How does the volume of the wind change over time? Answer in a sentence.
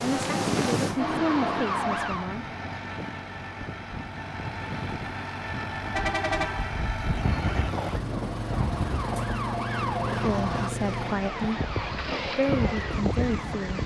The loudness of the wind goes down, then up.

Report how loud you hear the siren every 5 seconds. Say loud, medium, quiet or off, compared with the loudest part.
loud, medium, medium.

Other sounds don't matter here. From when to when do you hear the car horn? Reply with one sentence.
You can hear the car horn from 5.9 to 6.8 s.